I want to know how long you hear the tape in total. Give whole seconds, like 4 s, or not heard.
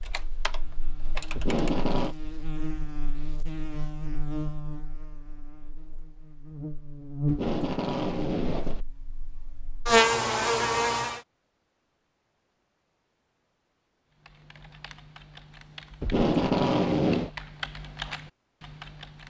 4 s.